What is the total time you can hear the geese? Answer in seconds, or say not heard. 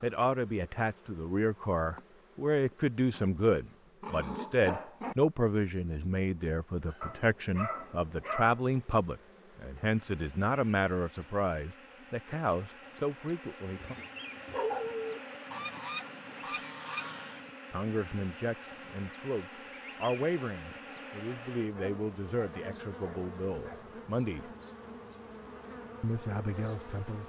2 s.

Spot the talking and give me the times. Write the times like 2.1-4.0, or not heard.
0.0-13.9, 17.7-24.5, 26.0-27.2.